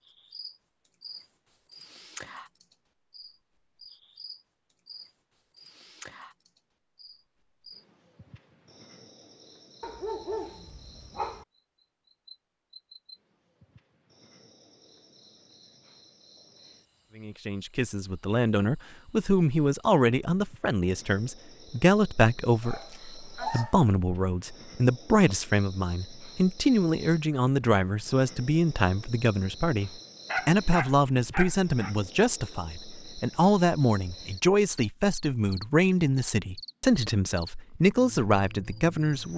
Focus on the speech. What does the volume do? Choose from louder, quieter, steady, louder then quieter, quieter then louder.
steady.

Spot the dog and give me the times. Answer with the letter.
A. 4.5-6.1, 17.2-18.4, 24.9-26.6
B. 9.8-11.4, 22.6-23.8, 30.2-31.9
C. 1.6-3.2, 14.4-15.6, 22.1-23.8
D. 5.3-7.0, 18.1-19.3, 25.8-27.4
B.